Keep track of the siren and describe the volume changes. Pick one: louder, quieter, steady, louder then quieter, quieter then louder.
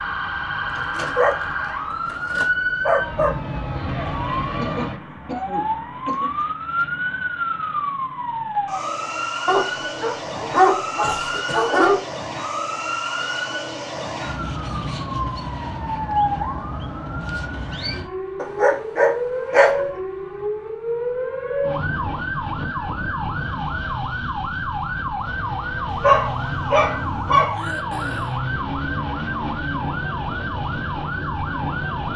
steady.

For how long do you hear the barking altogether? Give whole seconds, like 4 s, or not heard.
8 s.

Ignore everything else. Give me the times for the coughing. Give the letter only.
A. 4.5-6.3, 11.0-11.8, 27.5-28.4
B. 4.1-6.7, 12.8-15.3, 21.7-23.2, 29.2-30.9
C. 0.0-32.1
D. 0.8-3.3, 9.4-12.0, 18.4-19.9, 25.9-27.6
A.